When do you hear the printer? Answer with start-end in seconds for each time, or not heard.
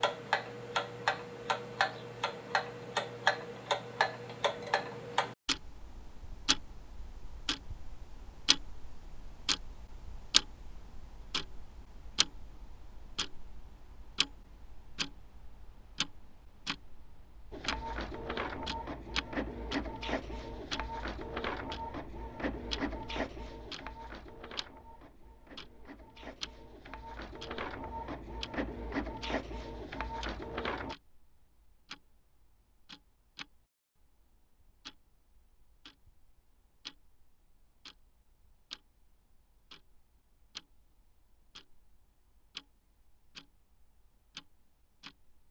17.5-30.9.